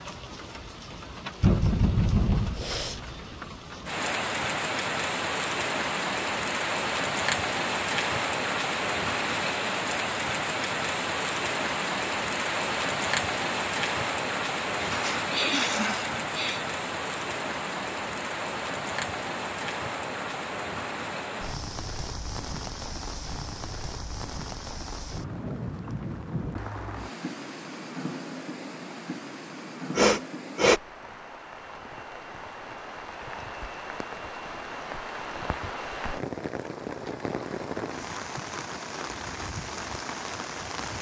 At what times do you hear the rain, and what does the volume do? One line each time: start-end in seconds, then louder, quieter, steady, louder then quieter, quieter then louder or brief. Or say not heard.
0.0-40.9 quieter.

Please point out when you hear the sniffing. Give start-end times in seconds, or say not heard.
2.5-3.0, 14.8-16.6, 29.9-30.8.